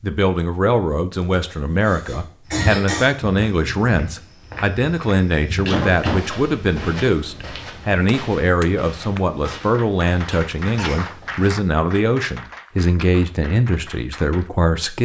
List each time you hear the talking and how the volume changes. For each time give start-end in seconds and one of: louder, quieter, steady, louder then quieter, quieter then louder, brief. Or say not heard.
0.0-14.9 steady.